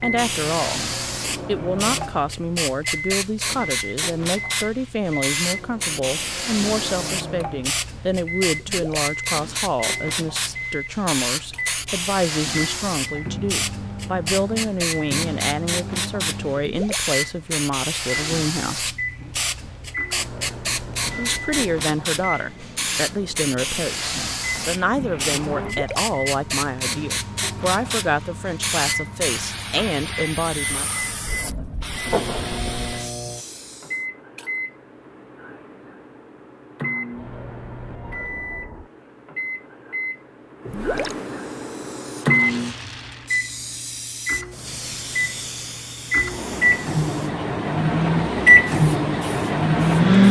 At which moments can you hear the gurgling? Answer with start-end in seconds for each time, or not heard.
8.6-9.1, 16.6-17.1, 25.6-26.1, 40.6-41.1.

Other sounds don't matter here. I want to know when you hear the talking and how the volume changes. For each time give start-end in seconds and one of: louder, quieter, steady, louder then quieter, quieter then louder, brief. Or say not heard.
0.0-0.8 brief
1.4-18.9 steady
21.1-31.0 steady.